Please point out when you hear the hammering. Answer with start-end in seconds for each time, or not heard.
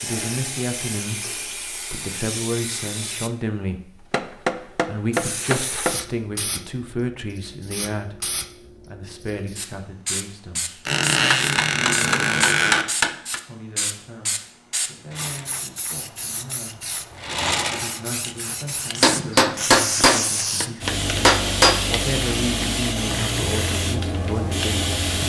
4.1-6.0, 11.3-13.4, 19.0-21.8.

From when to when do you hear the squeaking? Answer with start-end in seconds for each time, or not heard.
10.8-12.8.